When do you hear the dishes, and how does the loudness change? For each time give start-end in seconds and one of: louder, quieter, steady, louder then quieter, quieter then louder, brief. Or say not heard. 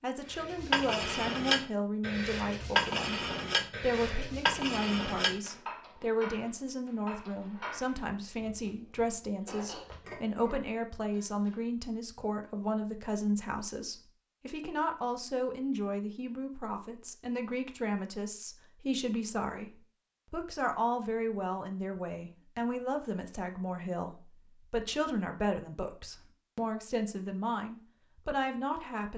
0.3-11.6 quieter.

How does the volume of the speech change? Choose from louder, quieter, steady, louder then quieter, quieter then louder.
steady.